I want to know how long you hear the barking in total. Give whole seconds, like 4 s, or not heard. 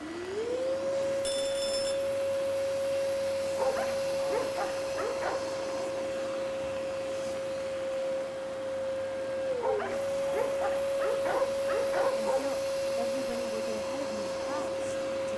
5 s.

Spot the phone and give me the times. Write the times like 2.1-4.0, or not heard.
1.2-1.9.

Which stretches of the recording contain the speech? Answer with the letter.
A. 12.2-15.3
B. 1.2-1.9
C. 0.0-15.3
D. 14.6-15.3
A.